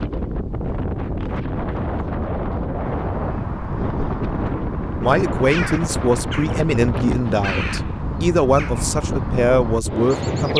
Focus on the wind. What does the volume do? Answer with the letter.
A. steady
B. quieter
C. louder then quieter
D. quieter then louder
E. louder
A.